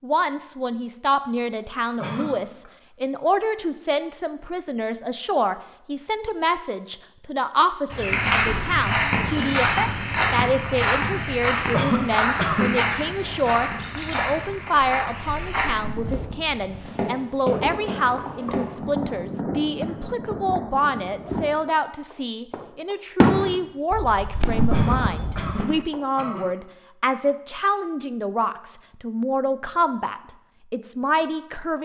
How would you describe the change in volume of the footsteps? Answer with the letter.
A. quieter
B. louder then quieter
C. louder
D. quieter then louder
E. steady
A.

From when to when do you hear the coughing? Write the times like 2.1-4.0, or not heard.
2.0-2.7, 11.7-12.8, 24.7-26.4.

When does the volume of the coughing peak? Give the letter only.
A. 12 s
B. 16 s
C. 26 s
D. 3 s
A.